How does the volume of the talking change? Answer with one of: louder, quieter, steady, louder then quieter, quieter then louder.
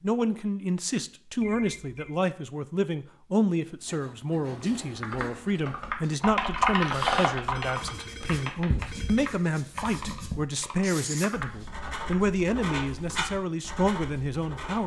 steady.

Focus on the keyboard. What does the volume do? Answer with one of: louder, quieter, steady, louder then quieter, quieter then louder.
louder then quieter.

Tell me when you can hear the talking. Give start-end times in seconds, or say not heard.
0.0-14.8.